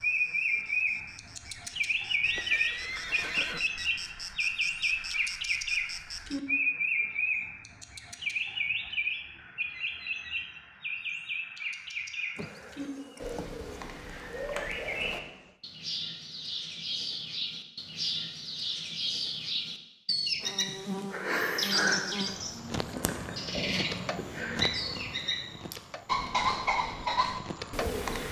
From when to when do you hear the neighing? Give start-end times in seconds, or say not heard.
2.2-3.6.